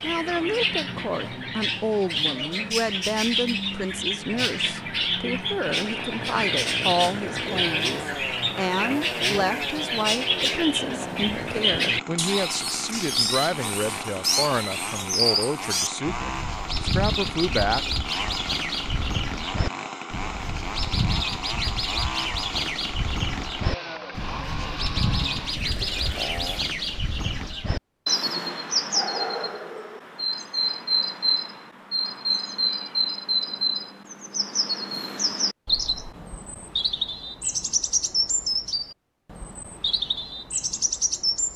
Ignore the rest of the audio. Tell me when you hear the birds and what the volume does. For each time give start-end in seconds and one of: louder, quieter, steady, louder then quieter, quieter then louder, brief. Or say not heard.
0.0-41.5 steady.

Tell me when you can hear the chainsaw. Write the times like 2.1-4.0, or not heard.
5.7-26.6.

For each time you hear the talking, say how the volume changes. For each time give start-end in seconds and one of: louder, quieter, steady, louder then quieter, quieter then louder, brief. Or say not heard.
0.0-17.9 steady.